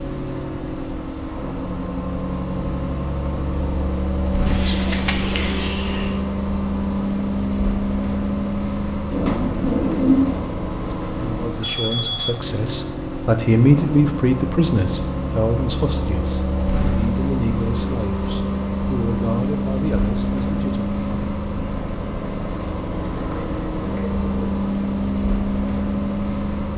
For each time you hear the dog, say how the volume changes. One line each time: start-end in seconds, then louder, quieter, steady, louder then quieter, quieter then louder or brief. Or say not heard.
not heard.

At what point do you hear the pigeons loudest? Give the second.
10 s.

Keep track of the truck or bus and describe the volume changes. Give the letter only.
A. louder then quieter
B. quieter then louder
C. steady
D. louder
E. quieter
C.